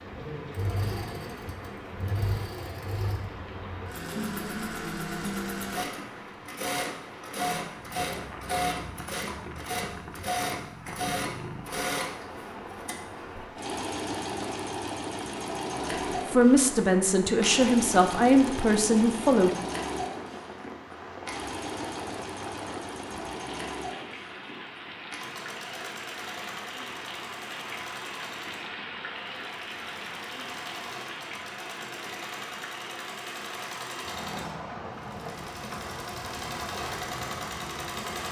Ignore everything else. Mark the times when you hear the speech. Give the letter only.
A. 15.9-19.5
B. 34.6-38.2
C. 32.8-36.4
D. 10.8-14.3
A.